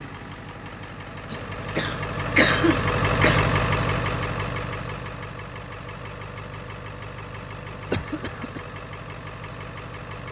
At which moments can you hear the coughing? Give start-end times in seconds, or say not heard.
1.3-3.4, 7.7-8.6.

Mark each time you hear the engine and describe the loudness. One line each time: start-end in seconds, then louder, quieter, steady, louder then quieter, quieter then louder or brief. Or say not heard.
0.0-10.2 louder then quieter.